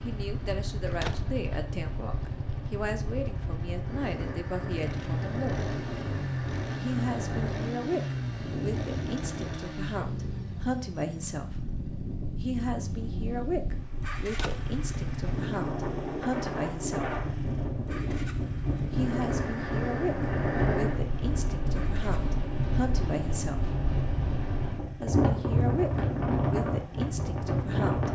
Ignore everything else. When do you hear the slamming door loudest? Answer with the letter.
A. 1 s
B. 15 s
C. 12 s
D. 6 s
A.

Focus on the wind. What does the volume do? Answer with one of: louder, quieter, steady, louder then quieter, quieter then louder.
louder.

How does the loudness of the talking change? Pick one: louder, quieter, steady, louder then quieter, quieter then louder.
steady.